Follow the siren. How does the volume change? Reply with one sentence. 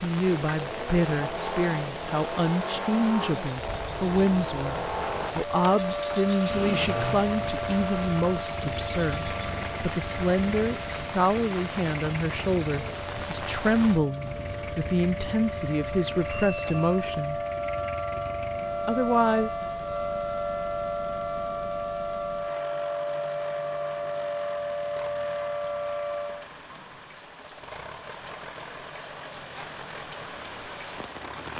The volume of the siren goes down, then up.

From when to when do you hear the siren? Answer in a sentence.
You can hear the siren from 5.5 to 26.5 s.